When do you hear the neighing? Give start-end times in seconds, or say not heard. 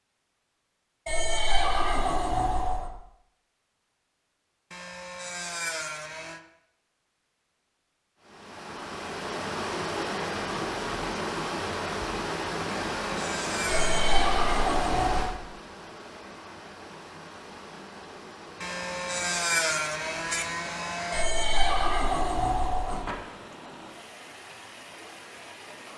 1.1-2.9, 13.7-15.3, 21.1-23.1.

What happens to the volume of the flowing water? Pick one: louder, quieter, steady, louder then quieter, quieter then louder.
quieter.